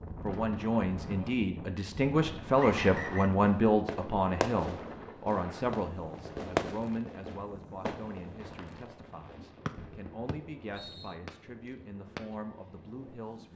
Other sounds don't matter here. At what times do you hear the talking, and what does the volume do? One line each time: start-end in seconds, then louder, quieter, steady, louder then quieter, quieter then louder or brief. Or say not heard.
0.2-13.5 quieter.